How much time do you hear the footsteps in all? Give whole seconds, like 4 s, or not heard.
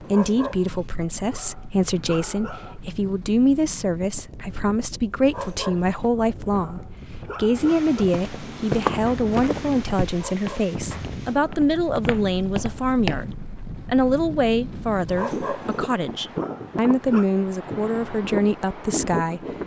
5 s.